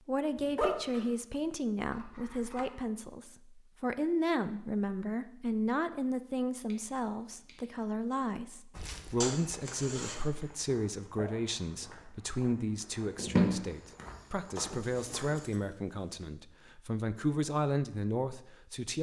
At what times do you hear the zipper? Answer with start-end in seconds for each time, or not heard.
0.3-1.1, 9.2-10.2, 14.6-16.2.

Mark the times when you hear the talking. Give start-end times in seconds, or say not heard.
0.1-18.9.